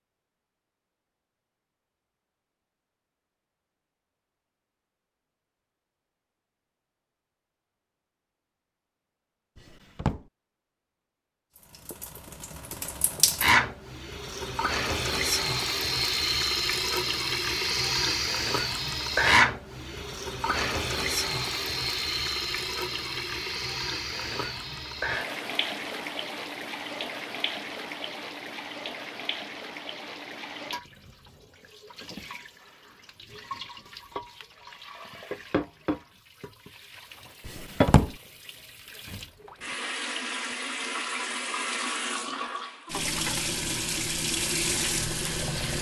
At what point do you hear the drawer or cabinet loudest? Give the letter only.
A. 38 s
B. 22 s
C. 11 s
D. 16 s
A.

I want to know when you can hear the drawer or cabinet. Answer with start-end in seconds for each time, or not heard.
9.6-10.2, 37.5-38.1.